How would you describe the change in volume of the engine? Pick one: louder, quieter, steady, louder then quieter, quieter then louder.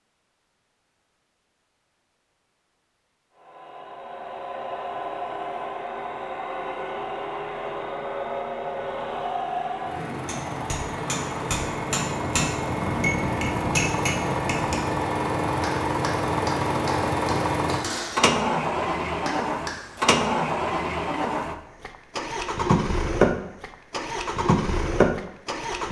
louder.